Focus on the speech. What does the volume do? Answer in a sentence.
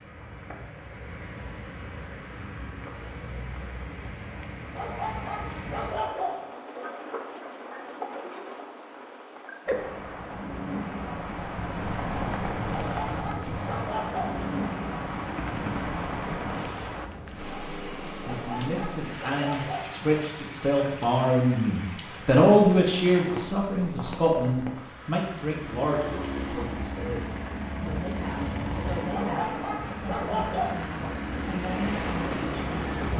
The volume of the speech goes up, then down.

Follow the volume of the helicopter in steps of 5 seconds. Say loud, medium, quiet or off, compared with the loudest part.
off, off, loud, loud, off, loud, loud.